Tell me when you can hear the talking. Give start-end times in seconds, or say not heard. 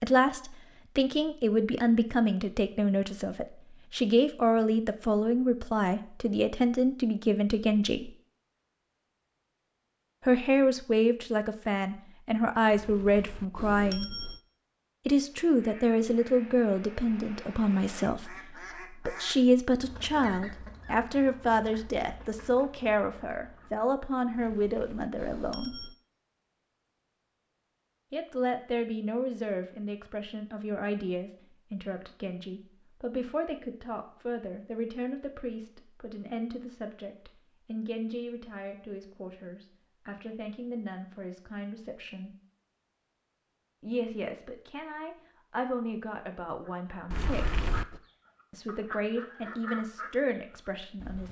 0.0-8.1, 10.2-14.1, 15.1-25.8, 28.1-42.3, 43.8-47.5, 48.5-51.2.